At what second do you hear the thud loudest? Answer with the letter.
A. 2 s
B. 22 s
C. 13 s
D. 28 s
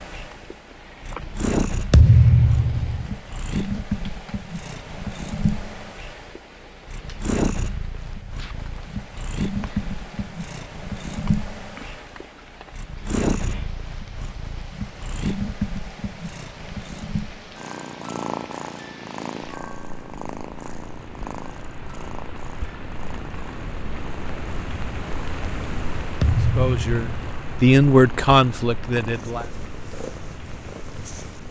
A.